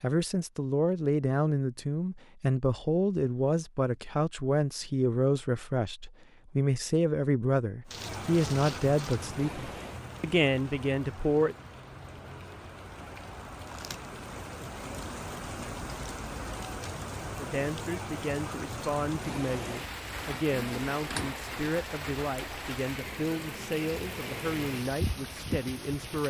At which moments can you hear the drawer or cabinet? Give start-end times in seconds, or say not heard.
20.4-21.4.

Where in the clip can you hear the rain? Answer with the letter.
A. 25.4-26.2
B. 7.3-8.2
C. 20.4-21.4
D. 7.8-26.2
D.